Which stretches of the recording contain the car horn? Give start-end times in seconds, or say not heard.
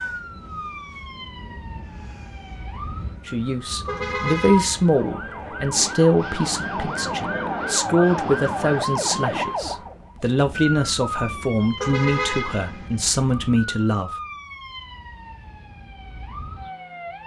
3.9-4.9, 11.8-13.2.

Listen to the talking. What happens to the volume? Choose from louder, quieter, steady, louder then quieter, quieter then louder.
steady.